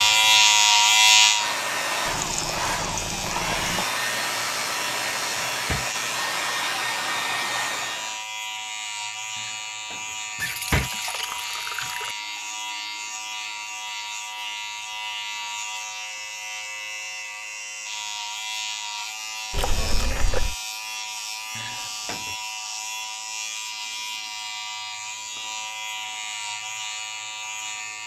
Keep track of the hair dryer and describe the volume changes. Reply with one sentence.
The loudness of the hair dryer stays about the same.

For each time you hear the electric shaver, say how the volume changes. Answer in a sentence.
You can hear the electric shaver from 0.0 to 28.0 s, getting quieter.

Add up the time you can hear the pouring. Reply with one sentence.
The pouring can be heard for 5 seconds in total.